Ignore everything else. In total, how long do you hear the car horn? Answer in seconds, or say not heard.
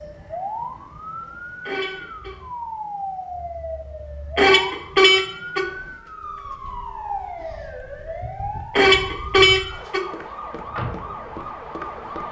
3 s.